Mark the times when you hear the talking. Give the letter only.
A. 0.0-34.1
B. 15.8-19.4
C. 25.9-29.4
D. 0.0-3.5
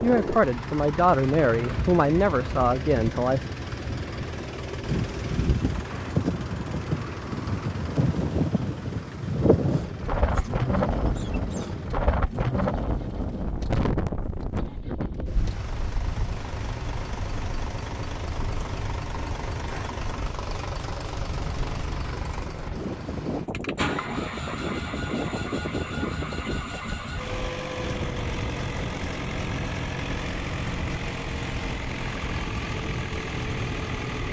D.